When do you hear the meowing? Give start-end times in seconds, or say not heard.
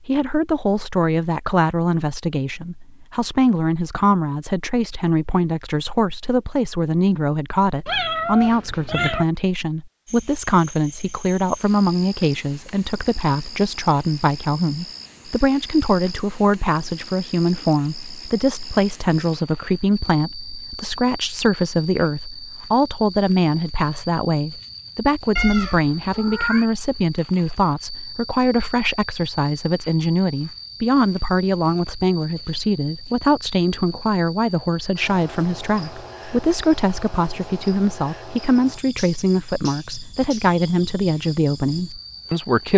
7.8-9.2, 25.4-26.6.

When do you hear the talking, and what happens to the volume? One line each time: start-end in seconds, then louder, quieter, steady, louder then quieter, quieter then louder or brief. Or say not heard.
0.1-42.7 steady.